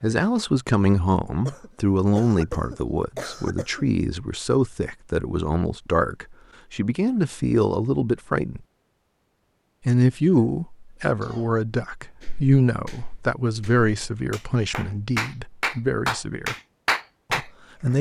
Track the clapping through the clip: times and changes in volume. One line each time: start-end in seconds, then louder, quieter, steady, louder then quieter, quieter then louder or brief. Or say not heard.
12.2-17.9 louder.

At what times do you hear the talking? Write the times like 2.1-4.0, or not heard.
0.0-8.6, 9.8-16.6, 17.3-17.9.